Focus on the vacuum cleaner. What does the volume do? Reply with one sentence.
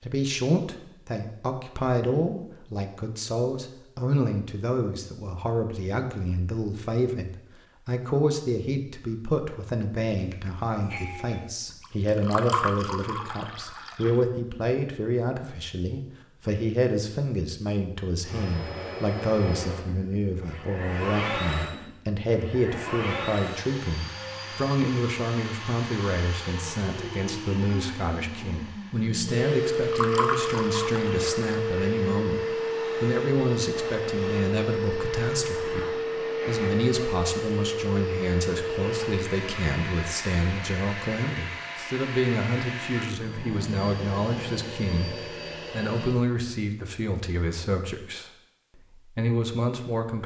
The loudness of the vacuum cleaner goes up, then down.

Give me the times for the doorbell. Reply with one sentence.
The doorbell can be heard from 10.2 to 11.5 s.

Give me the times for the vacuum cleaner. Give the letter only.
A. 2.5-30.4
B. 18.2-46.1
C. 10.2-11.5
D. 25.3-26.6
B.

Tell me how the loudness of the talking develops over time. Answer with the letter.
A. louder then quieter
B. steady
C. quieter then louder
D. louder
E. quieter
B.